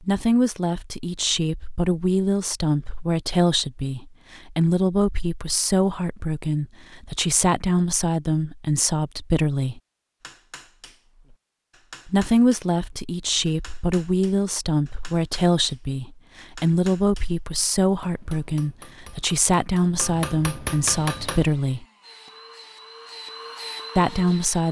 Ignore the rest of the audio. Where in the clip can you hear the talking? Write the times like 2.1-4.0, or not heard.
0.0-9.8, 12.1-21.9, 23.9-24.6.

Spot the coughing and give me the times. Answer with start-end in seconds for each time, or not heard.
not heard.